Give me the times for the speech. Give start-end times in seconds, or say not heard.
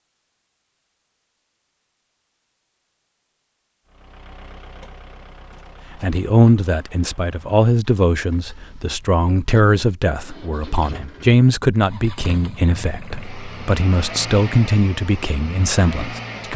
6.0-16.5.